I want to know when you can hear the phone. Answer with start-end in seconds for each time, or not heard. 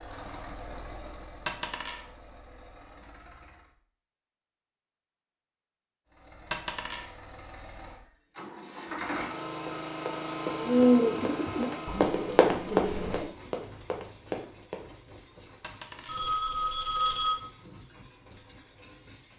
16.1-17.4.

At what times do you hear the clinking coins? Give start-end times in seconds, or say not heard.
1.4-2.0, 6.5-7.1, 15.6-16.2.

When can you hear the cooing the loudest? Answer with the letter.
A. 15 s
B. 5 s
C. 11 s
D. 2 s
C.